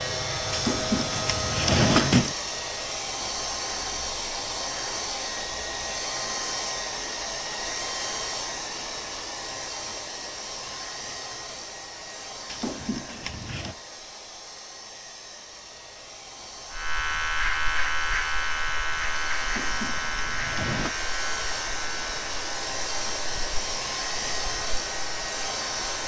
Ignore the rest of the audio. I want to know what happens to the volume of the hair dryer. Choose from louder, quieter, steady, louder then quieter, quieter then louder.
quieter then louder.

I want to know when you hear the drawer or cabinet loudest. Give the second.
2 s.